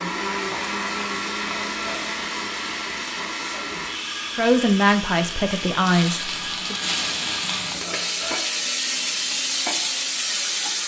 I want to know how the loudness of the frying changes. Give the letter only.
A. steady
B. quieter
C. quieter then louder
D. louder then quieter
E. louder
E.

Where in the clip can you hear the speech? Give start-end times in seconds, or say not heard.
4.3-6.8.